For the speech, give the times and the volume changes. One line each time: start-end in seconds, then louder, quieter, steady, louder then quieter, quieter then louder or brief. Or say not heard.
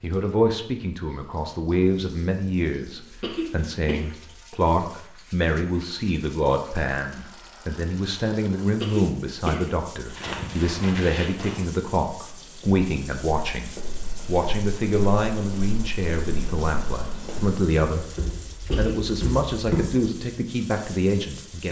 0.0-21.6 steady.